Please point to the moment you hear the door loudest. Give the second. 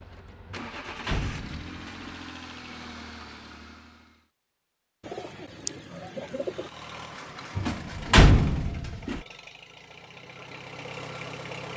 8 s.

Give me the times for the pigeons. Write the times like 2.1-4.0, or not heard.
5.0-6.7.